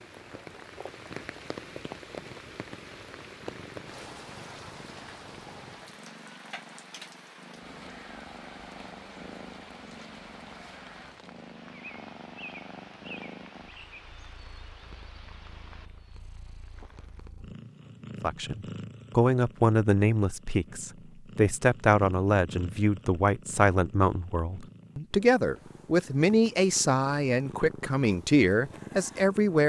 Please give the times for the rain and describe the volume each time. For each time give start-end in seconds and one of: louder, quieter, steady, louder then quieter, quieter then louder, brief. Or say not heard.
0.0-17.3 quieter.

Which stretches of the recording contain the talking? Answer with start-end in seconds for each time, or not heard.
18.2-29.6.